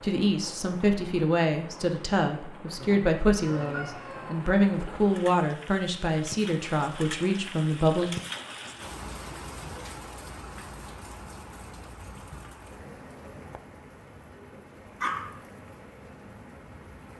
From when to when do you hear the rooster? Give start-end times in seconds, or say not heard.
3.4-4.5.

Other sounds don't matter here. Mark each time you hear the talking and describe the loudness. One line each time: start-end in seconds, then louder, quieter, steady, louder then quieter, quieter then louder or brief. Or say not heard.
0.0-8.2 steady.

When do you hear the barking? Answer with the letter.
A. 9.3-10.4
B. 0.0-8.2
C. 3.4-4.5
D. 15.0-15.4
D.